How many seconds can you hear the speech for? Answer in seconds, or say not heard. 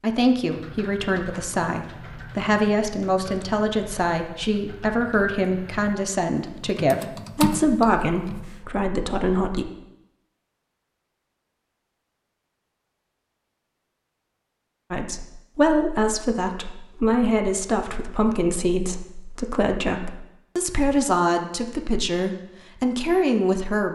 19 s.